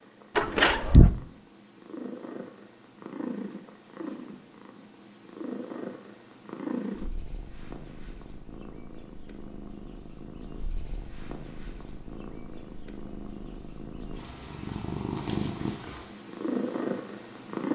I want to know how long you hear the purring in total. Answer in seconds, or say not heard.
18 s.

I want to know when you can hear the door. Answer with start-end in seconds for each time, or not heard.
0.3-1.1.